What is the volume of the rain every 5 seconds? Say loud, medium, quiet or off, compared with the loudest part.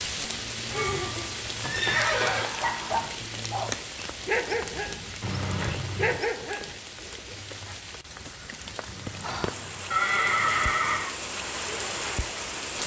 loud, medium, loud.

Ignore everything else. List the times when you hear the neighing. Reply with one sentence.
The neighing can be heard from 0.7 to 2.5 s, from 5.2 to 6.2 s and from 8.8 to 11.2 s.